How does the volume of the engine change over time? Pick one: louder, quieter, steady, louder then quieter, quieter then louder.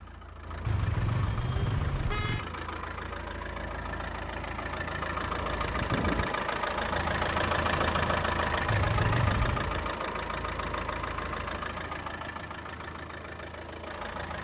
louder then quieter.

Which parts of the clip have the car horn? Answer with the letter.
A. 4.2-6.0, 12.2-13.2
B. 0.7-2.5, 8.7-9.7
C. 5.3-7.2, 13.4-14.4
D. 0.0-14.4
B.